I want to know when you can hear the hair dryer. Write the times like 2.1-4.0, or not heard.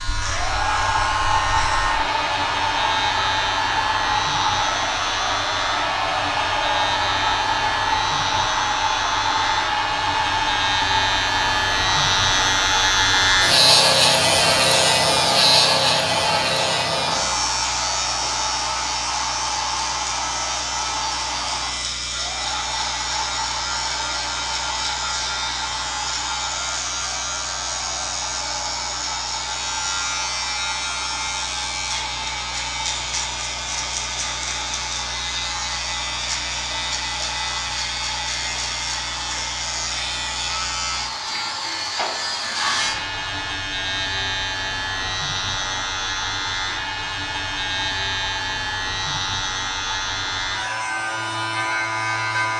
0.0-52.5.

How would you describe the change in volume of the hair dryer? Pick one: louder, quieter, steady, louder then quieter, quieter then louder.
quieter.